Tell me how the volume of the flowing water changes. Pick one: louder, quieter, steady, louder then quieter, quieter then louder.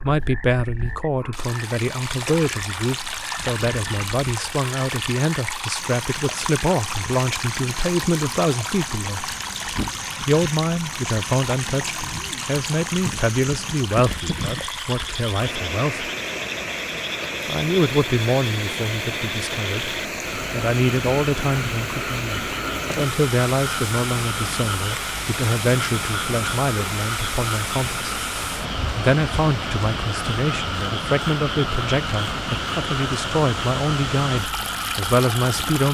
steady.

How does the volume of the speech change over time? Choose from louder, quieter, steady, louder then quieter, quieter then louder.
steady.